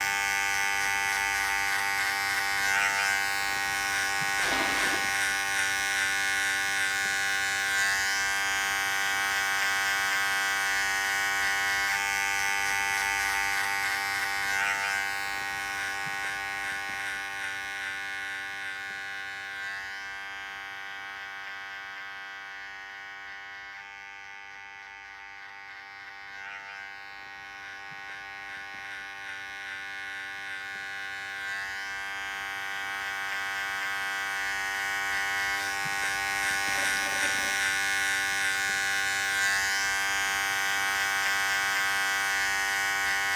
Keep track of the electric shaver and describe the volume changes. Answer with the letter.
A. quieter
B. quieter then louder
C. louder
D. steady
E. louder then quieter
B.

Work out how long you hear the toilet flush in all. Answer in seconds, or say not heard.
2 s.